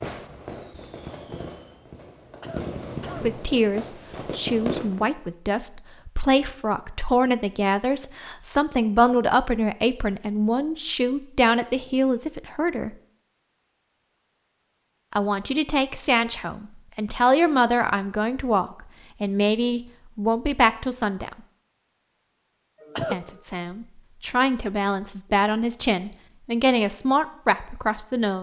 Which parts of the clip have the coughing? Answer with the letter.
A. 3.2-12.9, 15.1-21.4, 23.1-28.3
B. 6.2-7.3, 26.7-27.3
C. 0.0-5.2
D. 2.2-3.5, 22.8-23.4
D.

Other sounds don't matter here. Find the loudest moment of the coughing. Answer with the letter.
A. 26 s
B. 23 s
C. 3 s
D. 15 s
B.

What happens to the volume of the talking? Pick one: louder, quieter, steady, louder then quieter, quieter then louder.
steady.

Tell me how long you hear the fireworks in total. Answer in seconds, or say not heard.
5 s.